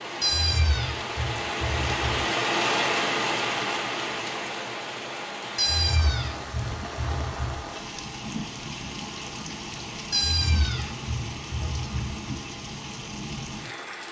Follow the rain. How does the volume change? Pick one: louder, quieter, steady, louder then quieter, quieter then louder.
quieter.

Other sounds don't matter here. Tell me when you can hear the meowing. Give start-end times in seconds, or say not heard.
0.2-2.2, 5.5-7.6, 10.1-12.2.